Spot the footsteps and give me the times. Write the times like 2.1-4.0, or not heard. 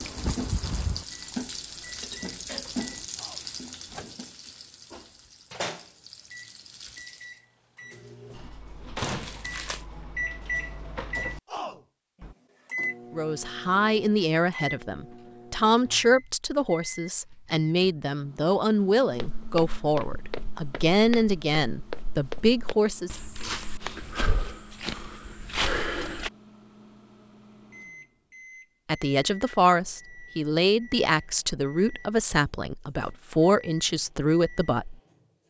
19.1-26.3.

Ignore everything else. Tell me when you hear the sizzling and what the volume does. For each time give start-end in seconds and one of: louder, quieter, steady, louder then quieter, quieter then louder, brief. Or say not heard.
0.0-7.3 quieter.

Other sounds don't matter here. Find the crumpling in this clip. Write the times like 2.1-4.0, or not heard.
8.9-9.8.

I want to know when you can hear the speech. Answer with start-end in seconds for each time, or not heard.
13.1-23.1, 28.9-35.0.